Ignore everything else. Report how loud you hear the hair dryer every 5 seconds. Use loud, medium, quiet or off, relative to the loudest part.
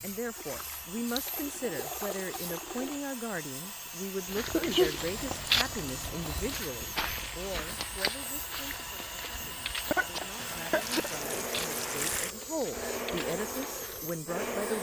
medium, medium, loud.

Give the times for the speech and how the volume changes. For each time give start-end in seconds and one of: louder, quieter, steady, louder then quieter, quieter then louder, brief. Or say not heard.
0.0-14.7 quieter then louder.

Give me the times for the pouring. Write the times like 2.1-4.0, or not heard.
0.3-3.0, 5.0-6.7, 10.3-12.3.